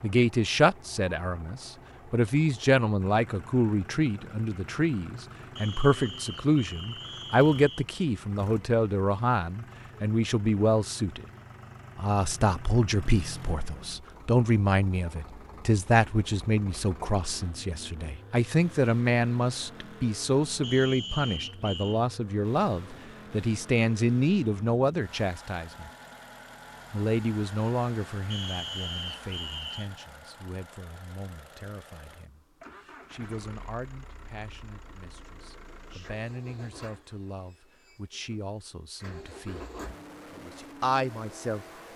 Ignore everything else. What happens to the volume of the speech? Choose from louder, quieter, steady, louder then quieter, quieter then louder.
quieter.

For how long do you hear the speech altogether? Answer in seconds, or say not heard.
40 s.